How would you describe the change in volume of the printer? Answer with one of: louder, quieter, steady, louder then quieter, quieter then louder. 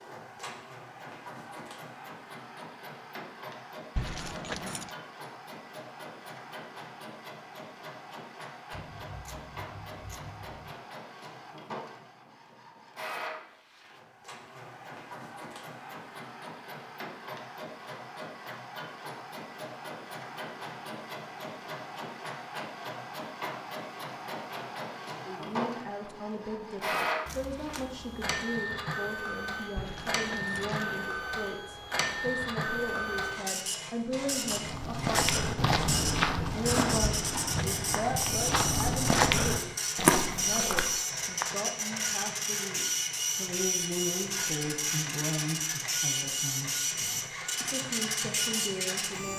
louder.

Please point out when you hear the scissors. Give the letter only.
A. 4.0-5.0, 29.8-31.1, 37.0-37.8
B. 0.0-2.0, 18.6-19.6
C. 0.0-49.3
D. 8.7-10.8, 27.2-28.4
D.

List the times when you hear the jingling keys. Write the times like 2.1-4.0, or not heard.
4.0-5.0, 29.8-31.1, 37.0-37.8.